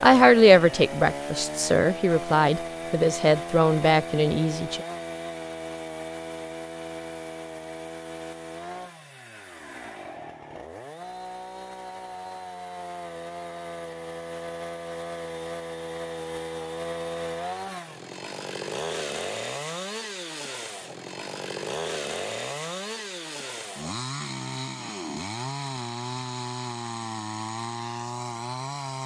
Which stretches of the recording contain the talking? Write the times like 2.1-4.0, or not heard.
0.0-4.8.